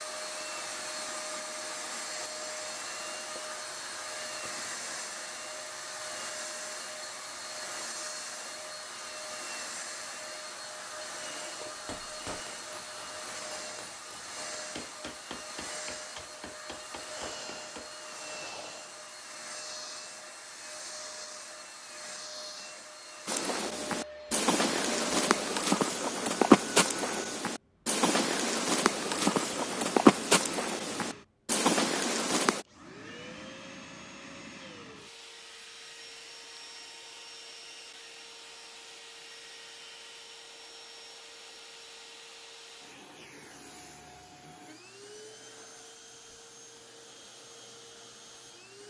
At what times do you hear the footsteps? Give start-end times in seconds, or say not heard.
23.2-32.6.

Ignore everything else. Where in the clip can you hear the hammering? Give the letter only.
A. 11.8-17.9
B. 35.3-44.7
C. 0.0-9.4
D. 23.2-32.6
A.